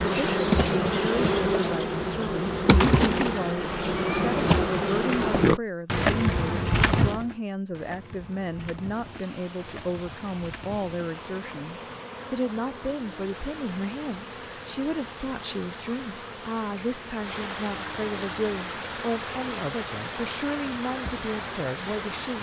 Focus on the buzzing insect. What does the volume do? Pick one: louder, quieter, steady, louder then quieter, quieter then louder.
quieter.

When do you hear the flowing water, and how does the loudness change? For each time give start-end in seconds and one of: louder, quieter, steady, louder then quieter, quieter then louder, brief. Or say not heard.
8.8-22.3 louder.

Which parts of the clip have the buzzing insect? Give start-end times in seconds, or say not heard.
0.0-22.3.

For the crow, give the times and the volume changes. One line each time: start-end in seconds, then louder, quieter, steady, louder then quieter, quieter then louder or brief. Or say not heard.
not heard.